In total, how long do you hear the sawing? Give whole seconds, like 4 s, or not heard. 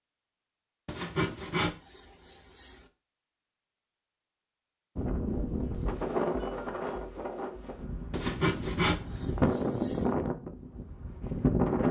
4 s.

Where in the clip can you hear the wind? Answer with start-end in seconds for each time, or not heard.
5.0-11.8.